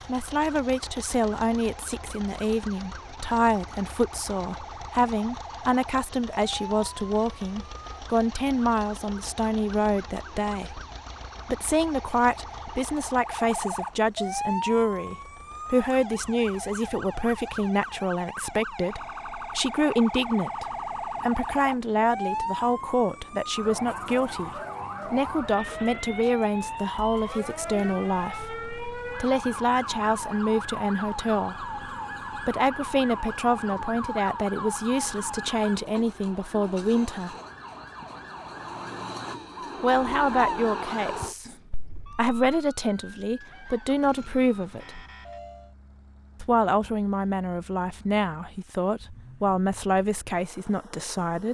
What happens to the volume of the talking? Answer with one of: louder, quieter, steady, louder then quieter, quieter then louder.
steady.